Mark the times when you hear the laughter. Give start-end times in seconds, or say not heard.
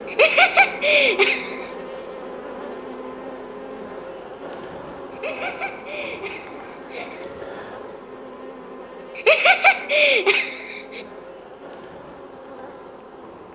0.1-1.7, 5.1-7.2, 9.2-11.1.